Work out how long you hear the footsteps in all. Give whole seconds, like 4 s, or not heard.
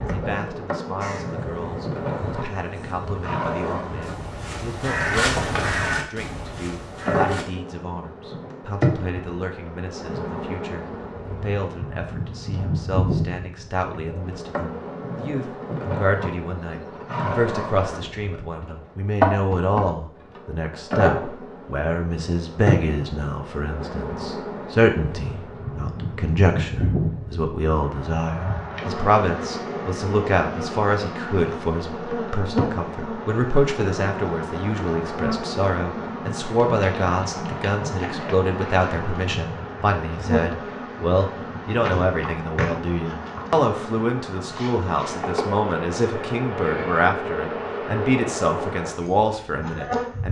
not heard.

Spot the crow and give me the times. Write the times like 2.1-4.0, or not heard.
1.0-7.5.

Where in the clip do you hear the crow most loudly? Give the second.
5 s.